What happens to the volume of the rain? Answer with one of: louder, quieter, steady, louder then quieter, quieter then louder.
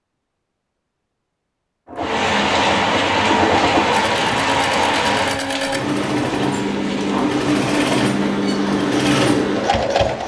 quieter.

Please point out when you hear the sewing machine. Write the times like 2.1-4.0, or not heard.
1.9-10.2.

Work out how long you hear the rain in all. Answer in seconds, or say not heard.
8 s.